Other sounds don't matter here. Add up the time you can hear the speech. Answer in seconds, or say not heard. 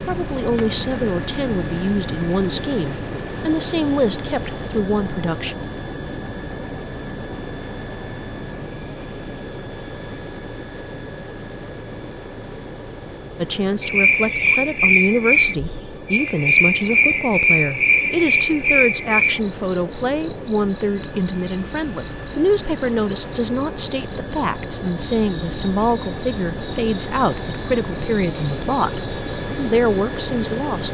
23 s.